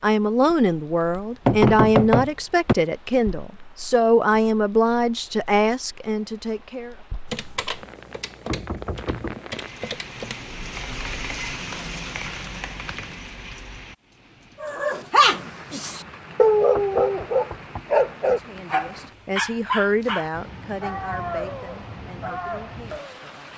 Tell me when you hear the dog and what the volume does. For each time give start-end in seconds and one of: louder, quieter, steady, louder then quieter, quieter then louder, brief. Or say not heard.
14.6-23.2 quieter.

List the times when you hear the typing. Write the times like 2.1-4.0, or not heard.
7.2-13.2.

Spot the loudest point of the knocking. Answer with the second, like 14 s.
2 s.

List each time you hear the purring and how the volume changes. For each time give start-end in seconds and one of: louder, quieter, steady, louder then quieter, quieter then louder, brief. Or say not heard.
not heard.